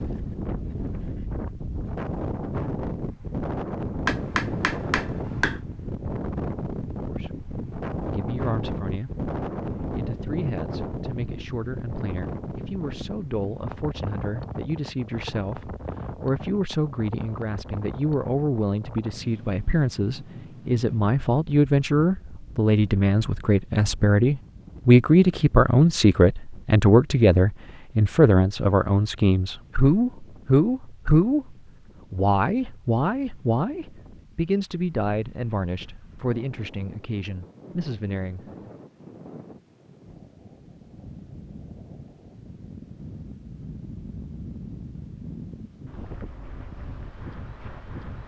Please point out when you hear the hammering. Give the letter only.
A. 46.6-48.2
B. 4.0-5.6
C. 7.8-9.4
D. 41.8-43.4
B.